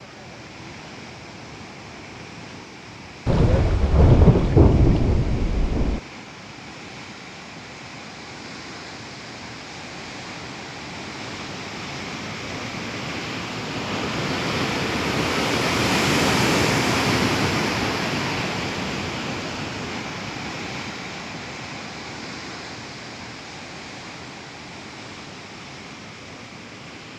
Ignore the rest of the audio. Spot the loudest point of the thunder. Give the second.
4 s.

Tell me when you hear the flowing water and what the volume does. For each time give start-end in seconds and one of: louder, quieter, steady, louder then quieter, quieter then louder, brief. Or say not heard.
0.0-27.1 louder then quieter.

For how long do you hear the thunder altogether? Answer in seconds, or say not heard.
3 s.